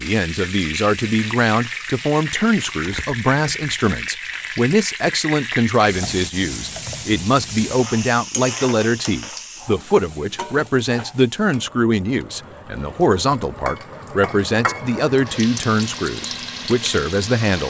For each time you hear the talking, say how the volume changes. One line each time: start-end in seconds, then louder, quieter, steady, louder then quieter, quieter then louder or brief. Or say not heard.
0.0-17.6 steady.